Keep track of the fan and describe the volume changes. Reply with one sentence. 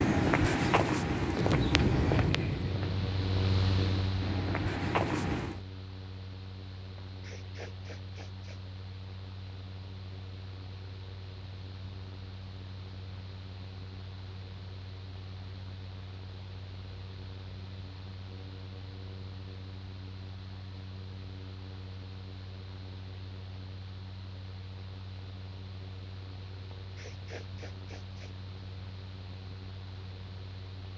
The loudness of the fan goes down.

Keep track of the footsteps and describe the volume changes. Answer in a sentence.
The loudness of the footsteps goes down, then up.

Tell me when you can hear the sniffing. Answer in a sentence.
The sniffing can be heard from 7.0 to 8.6 s and from 26.7 to 28.8 s.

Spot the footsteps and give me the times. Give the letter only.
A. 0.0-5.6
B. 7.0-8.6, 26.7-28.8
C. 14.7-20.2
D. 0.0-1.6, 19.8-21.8
A.